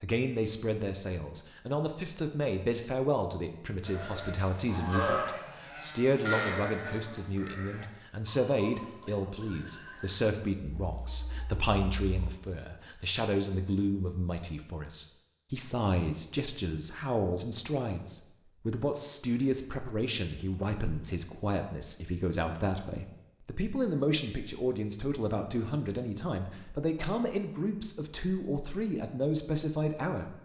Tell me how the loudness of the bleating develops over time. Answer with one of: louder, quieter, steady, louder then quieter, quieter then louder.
quieter.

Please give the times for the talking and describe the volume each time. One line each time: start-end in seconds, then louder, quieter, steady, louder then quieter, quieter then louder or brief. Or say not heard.
0.0-30.3 steady.